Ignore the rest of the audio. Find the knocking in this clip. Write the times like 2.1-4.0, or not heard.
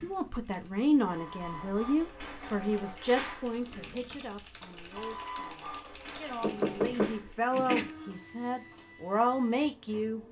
6.4-7.9.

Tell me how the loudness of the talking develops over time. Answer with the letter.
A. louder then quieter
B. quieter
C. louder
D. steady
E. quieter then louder
E.